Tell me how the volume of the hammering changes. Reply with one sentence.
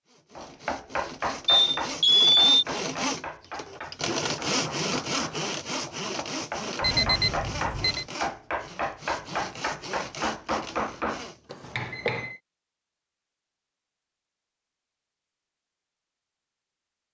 The volume of the hammering goes down, then up.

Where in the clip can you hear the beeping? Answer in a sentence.
The beeping can be heard from 1.4 to 2.6 s, from 6.8 to 8.1 s and from 11.5 to 12.3 s.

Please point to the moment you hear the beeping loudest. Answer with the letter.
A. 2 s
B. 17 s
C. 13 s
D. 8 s
A.